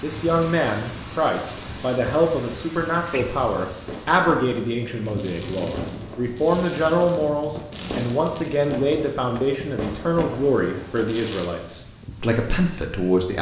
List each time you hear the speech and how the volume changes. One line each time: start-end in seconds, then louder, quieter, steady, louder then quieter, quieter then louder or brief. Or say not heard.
0.0-13.3 steady.